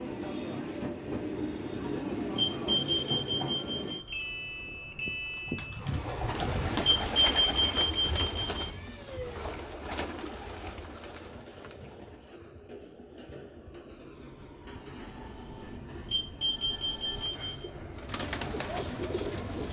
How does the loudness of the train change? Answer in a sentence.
The loudness of the train goes down.